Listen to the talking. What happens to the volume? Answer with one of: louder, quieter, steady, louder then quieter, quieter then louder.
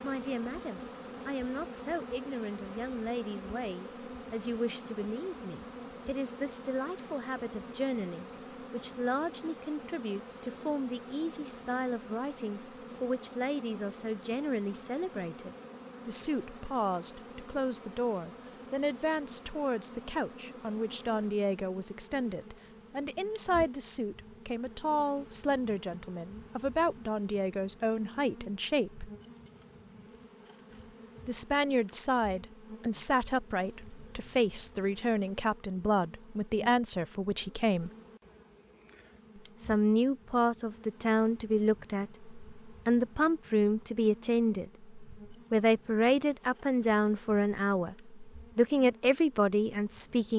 louder.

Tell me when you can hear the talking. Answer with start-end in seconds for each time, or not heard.
0.0-29.1, 31.2-37.9, 39.6-50.3.